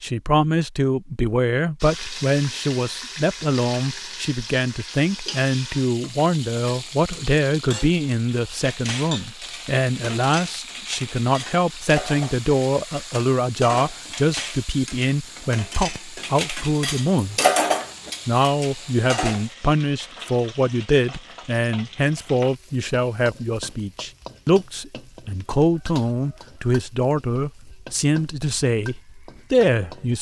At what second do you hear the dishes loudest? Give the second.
18 s.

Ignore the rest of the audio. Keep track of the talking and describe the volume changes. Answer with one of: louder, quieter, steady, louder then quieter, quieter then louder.
steady.